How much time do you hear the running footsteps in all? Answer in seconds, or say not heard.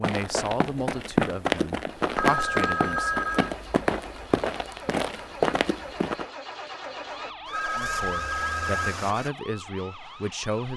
6 s.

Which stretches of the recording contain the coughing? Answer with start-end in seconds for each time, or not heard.
not heard.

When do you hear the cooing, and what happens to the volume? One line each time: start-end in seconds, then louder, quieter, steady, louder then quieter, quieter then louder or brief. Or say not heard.
not heard.